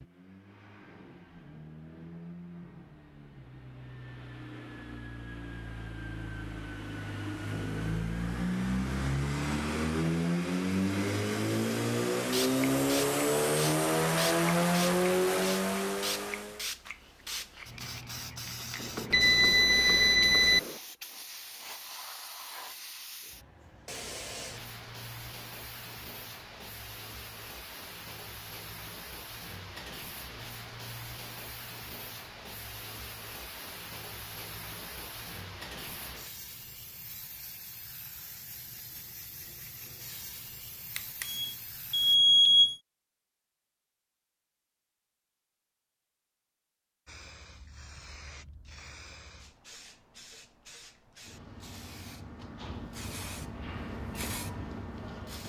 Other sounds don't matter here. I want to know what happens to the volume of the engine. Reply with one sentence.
The volume of the engine goes up.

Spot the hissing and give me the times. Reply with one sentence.
The hissing can be heard from 12.3 to 42.2 s and from 47.0 to 55.4 s.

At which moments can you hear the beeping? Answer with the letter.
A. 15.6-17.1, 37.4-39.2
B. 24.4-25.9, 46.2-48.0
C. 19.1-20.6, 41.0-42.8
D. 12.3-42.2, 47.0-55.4
C.